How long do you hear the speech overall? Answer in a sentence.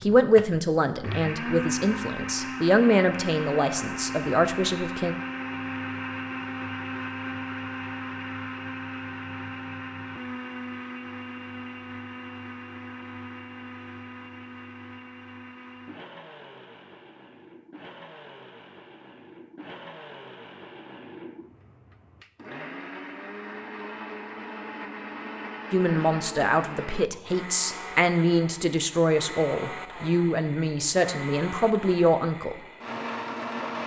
You can hear the speech for 12 seconds altogether.